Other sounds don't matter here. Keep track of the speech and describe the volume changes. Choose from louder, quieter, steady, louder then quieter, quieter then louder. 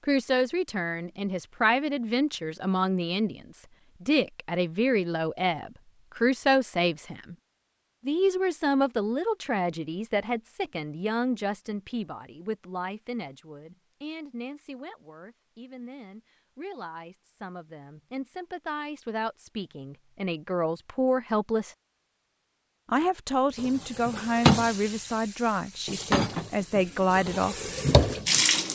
quieter then louder.